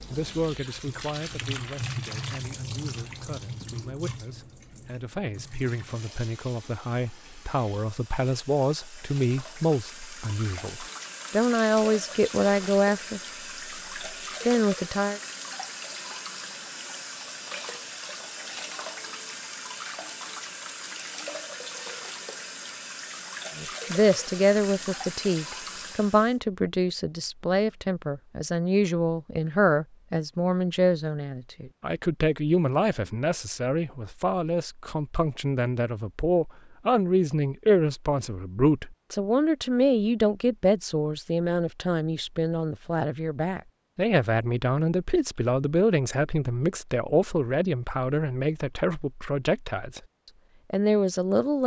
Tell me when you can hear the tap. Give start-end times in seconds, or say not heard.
0.0-26.4.